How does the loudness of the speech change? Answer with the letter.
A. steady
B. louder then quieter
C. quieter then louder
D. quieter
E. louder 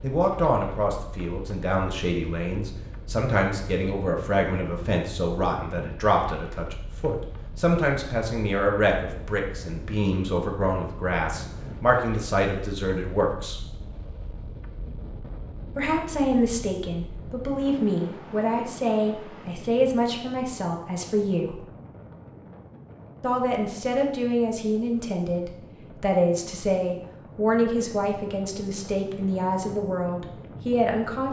A.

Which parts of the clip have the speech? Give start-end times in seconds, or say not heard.
0.0-13.6, 15.8-21.6, 23.2-31.2.